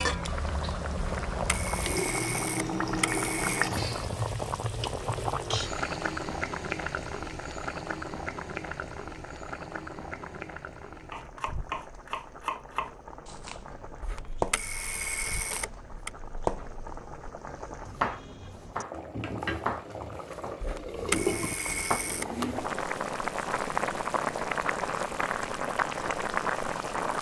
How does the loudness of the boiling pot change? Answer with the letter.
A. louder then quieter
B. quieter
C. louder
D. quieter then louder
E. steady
D.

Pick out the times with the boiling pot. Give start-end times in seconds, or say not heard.
0.0-27.1.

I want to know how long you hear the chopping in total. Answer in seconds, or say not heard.
10 s.